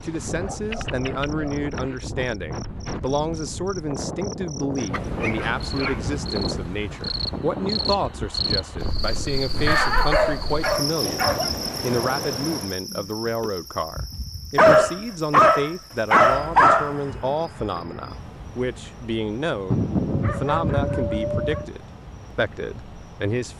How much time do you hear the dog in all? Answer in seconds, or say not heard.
9 s.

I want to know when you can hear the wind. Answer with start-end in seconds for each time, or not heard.
0.0-12.8.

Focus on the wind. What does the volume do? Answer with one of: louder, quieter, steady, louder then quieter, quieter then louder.
steady.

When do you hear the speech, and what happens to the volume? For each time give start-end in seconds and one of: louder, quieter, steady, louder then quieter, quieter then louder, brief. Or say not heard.
0.0-23.5 steady.